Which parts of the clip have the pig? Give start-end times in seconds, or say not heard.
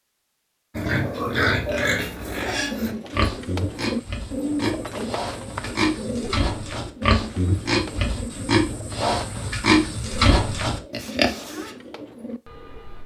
0.8-11.7.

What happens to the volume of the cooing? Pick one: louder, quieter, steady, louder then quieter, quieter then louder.
quieter.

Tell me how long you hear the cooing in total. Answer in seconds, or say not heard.
11 s.